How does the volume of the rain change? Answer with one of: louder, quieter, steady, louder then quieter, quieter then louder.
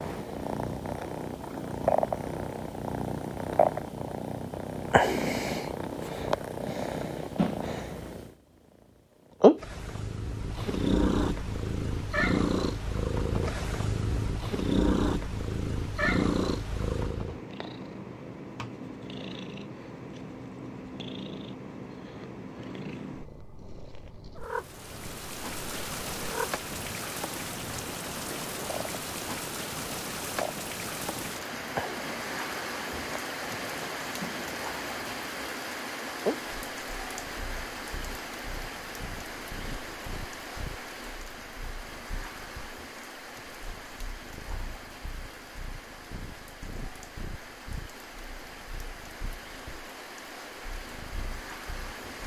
quieter.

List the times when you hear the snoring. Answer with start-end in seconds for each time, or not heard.
not heard.